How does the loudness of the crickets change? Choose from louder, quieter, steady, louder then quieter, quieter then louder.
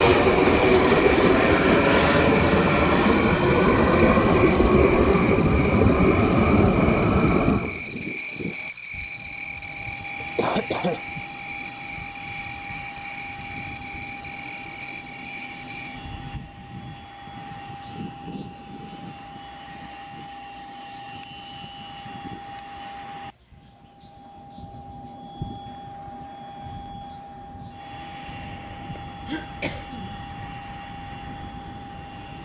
quieter.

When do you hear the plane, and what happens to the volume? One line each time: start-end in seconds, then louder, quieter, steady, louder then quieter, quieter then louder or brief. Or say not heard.
0.0-32.3 quieter.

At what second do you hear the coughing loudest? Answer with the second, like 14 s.
11 s.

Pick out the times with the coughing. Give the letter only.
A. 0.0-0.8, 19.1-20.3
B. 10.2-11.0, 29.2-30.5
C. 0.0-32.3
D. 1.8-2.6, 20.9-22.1
B.